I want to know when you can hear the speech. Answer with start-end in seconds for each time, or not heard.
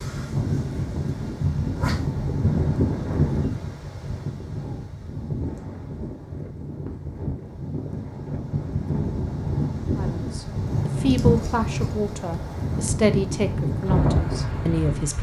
9.9-15.1.